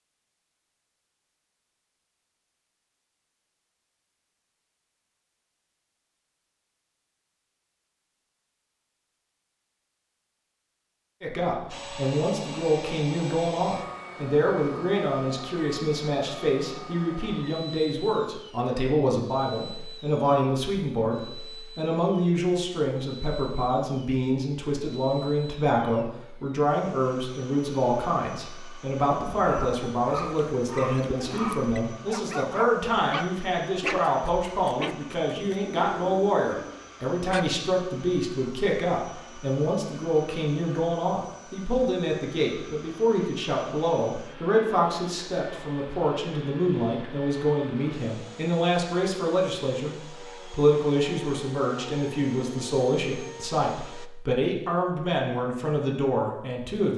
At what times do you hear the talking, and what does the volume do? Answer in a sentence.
The talking can be heard from 11.2 to 56.9 s, at a steady volume.